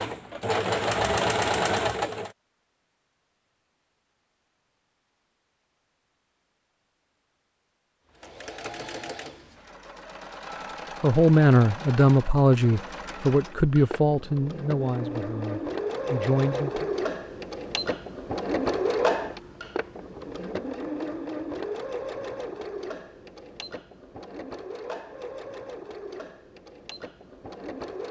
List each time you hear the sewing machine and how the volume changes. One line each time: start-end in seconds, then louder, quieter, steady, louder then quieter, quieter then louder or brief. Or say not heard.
0.0-2.3 brief
8.1-28.0 louder then quieter.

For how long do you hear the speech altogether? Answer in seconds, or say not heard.
6 s.